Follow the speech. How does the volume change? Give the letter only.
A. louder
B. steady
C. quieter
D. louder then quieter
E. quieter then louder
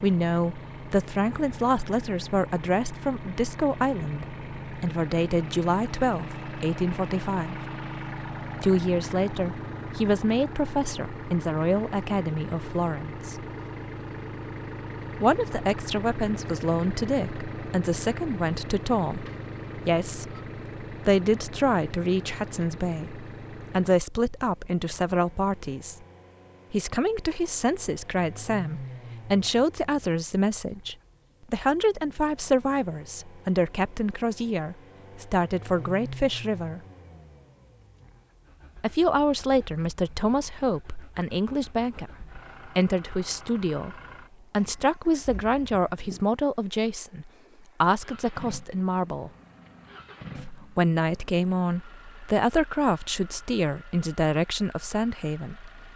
B.